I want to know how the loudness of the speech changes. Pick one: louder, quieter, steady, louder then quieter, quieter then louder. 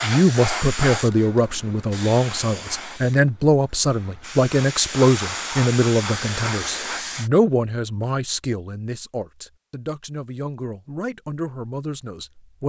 quieter.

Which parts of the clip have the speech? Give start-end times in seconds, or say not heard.
0.0-12.6.